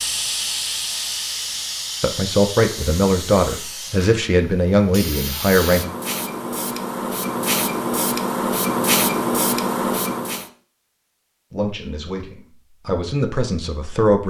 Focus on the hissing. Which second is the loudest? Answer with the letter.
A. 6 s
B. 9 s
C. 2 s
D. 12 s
B.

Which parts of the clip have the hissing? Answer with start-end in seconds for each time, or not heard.
0.0-10.5.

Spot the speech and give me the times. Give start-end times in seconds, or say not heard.
2.0-5.8, 11.5-14.2.